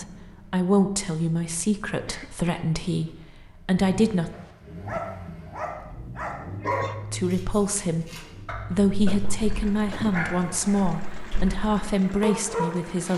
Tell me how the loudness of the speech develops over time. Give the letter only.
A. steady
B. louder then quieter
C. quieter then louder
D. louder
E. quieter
A.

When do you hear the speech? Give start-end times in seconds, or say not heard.
0.0-4.3, 7.1-13.1.